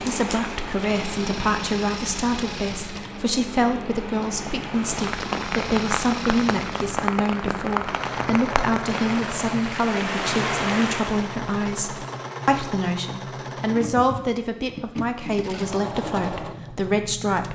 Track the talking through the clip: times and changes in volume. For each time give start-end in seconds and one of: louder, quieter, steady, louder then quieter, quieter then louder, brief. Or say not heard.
0.0-17.4 steady.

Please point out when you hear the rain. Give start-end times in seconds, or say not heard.
0.0-11.4.